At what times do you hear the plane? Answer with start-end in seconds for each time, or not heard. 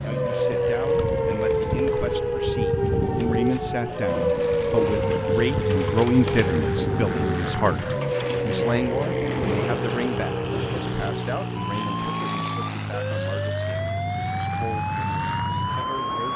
0.0-16.3.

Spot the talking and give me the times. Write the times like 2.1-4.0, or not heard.
0.0-16.3.